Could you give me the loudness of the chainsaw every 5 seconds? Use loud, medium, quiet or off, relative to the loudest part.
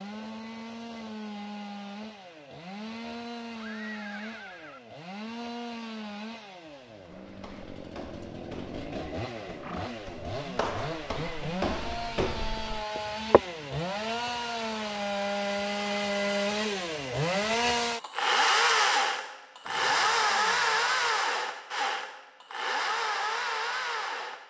quiet, quiet, medium, loud, loud.